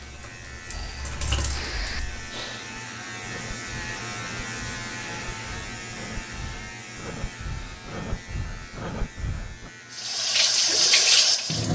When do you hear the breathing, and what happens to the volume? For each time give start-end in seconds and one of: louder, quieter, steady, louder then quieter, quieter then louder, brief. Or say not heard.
0.7-9.7 quieter then louder.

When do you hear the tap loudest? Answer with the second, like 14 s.
11 s.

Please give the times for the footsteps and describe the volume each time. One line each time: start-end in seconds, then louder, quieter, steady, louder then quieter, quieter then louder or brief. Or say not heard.
not heard.